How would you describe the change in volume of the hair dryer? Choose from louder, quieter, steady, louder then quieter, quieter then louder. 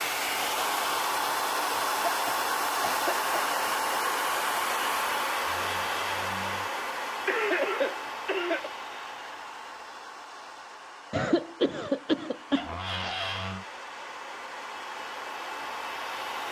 quieter then louder.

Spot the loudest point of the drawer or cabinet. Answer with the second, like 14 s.
13 s.